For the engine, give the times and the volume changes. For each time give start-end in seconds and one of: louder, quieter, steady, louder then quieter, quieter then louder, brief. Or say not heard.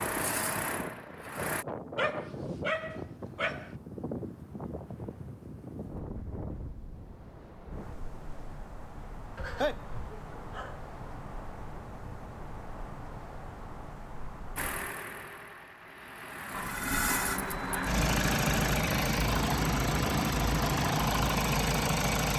0.0-1.6 brief
14.6-22.3 louder.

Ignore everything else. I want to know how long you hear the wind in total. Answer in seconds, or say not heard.
15 s.